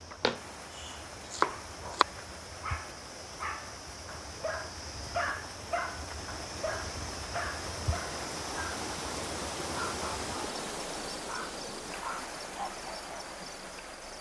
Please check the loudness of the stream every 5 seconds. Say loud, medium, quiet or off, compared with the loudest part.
medium, loud, loud.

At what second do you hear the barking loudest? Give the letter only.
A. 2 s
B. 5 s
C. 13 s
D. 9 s
B.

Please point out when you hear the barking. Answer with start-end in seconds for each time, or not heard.
1.8-8.8, 9.7-10.3, 11.2-13.2.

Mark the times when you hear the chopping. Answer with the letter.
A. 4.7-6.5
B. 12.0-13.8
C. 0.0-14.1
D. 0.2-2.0
D.